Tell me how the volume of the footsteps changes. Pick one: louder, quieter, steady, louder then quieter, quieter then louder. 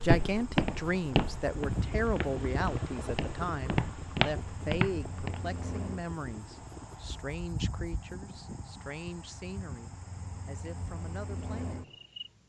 quieter then louder.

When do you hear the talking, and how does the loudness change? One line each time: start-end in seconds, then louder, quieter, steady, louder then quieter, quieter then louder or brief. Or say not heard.
0.0-11.8 quieter.